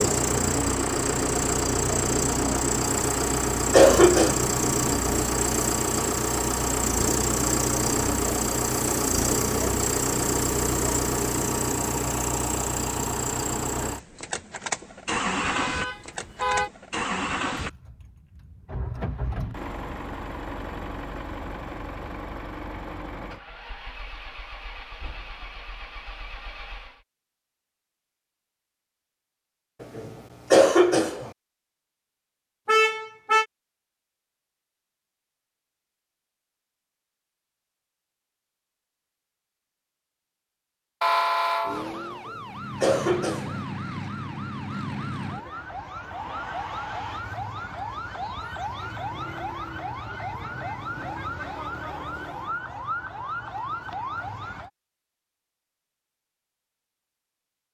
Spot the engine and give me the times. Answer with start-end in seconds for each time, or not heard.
0.0-27.1.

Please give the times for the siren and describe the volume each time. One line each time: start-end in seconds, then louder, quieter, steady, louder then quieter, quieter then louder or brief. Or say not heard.
41.6-54.7 steady.